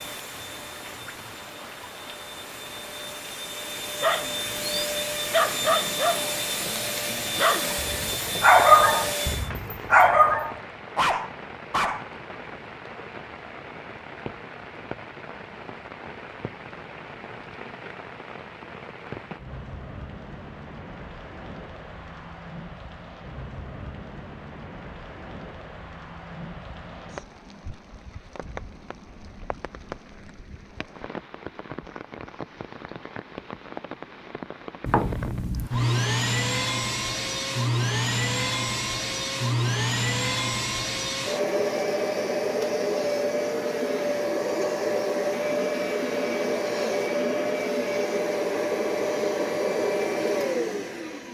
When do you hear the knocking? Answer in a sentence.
The knocking can be heard from 34.9 to 35.9 s.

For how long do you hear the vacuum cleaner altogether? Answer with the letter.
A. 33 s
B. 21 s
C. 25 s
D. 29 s
C.